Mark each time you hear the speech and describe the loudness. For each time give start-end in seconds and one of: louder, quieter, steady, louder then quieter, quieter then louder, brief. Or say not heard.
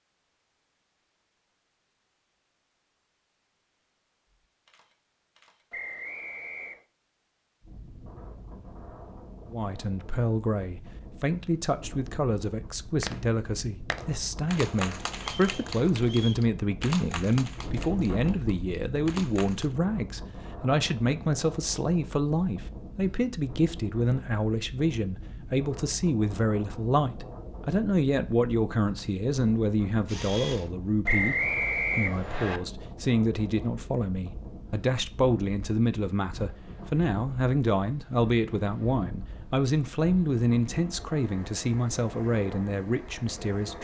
9.5-43.8 steady.